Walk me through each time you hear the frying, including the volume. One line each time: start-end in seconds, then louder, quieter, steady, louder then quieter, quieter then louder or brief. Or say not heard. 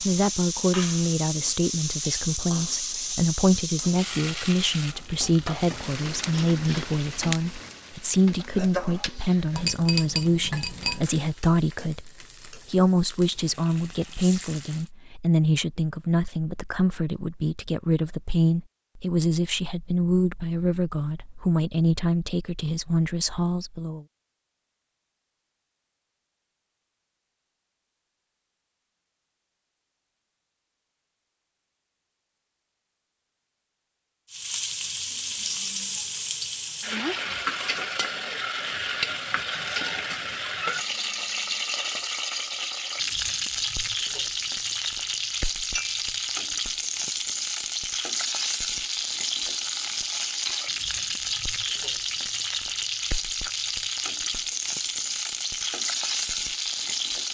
0.0-14.9 quieter
34.3-57.3 steady.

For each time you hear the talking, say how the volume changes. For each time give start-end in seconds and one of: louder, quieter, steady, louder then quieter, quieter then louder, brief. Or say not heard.
0.0-24.1 steady.